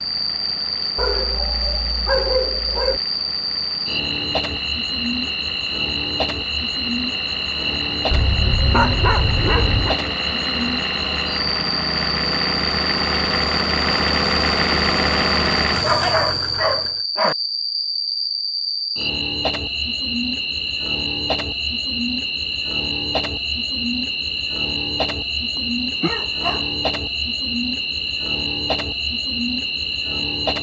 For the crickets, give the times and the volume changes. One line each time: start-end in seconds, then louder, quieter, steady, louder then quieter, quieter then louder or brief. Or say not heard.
0.0-30.5 steady.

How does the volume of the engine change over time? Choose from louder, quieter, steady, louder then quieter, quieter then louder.
louder.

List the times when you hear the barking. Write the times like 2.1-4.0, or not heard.
0.9-3.0, 8.1-9.9, 15.8-17.4, 25.6-26.7.